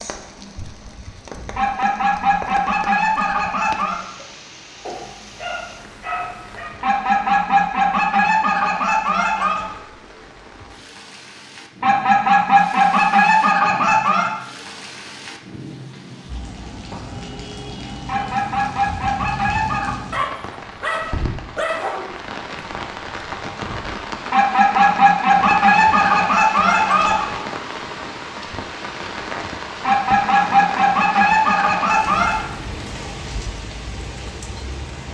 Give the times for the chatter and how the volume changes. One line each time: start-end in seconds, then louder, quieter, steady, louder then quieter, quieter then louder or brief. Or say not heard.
not heard.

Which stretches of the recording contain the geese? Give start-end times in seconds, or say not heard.
1.6-4.0, 6.8-9.7, 11.8-14.3, 18.1-19.9, 24.3-27.3, 29.8-32.5.